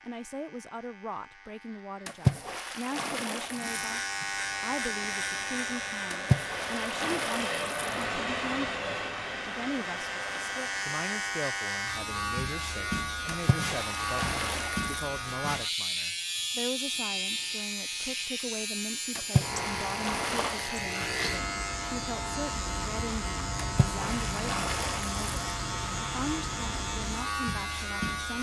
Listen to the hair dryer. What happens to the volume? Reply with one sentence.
The loudness of the hair dryer goes up, then down.